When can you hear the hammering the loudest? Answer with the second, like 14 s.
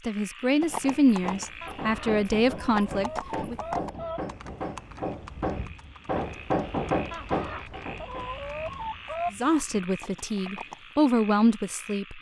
7 s.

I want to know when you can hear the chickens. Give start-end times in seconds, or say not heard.
1.6-4.3, 7.1-9.3.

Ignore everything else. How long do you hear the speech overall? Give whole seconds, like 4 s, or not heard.
6 s.